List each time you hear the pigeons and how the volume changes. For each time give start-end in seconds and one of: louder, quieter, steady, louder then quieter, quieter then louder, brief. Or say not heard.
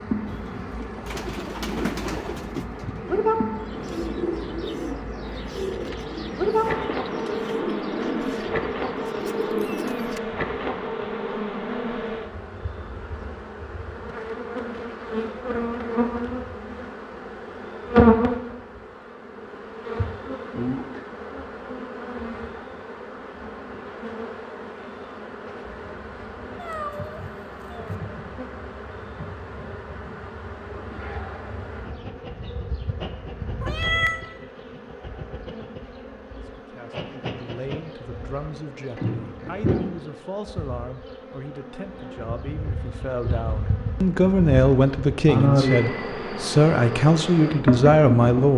0.2-10.2 steady.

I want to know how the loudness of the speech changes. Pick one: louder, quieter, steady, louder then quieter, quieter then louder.
louder.